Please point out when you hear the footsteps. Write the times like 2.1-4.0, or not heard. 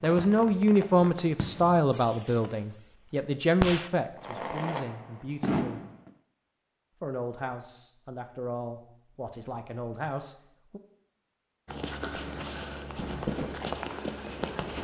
11.7-14.7.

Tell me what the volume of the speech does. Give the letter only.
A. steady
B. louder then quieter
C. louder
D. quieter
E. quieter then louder
D.